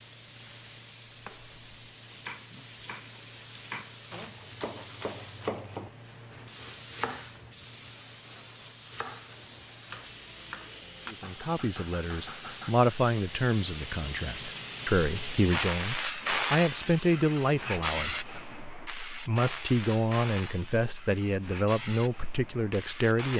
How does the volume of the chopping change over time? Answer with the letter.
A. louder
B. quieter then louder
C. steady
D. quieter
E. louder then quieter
E.